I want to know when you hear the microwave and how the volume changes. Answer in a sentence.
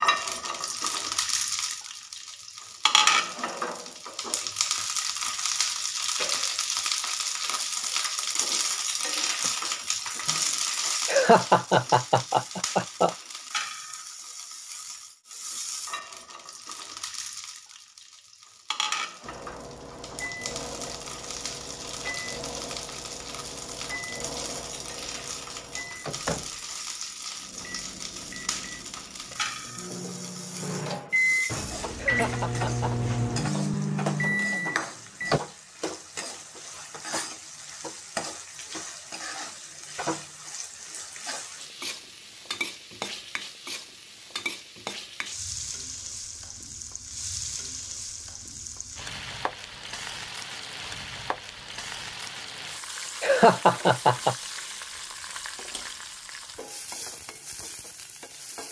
The microwave can be heard from 19.2 to 35.4 s, getting louder.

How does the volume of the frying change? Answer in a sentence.
The volume of the frying goes down.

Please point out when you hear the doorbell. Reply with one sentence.
You can't hear the doorbell here.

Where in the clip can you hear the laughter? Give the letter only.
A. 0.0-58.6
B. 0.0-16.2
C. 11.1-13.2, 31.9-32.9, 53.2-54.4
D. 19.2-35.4
C.